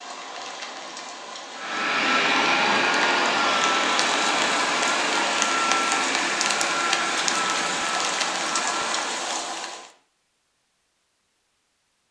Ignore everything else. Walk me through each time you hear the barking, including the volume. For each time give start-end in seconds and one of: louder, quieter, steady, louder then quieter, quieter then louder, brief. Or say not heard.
not heard.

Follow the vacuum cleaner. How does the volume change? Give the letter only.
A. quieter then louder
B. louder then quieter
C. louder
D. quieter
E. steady
D.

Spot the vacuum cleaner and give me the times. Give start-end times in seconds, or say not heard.
1.6-9.3.